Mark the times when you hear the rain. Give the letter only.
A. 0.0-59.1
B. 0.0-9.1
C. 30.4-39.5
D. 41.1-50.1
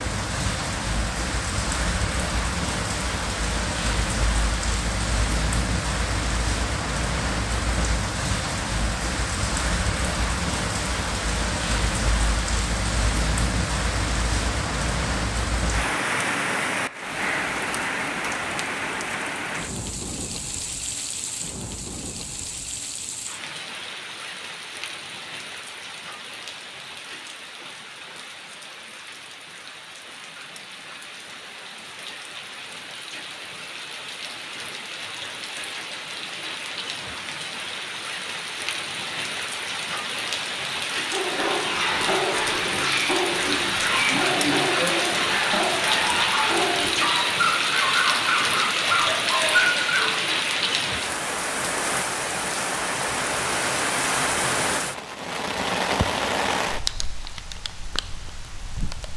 A.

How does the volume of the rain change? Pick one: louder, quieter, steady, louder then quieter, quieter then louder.
quieter then louder.